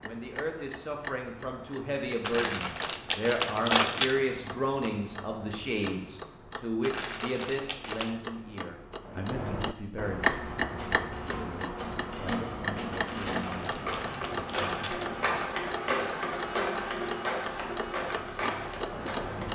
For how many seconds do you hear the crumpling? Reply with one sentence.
You can hear the crumpling for 5 seconds altogether.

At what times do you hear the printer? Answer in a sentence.
You can hear the printer from 10.1 to 19.4 s.